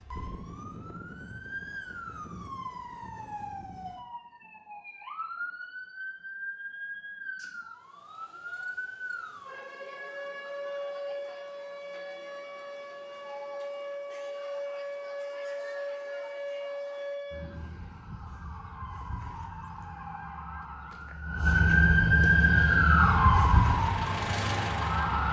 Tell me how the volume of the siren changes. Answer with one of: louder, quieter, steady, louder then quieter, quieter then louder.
louder.